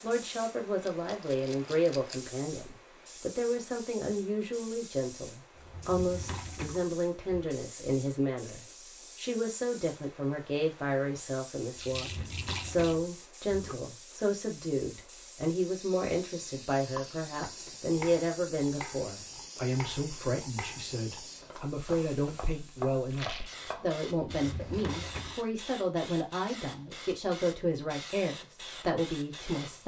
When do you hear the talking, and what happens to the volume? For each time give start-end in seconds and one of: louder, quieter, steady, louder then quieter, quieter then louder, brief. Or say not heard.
0.0-29.8 steady.